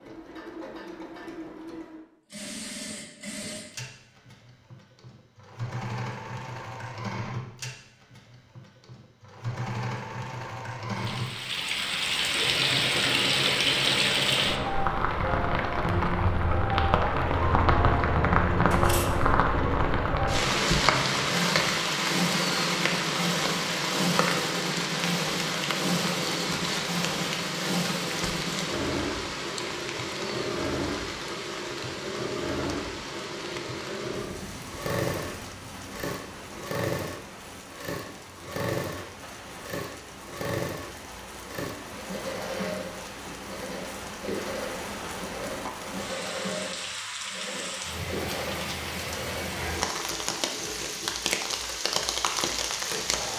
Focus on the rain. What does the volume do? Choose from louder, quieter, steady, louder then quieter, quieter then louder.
quieter then louder.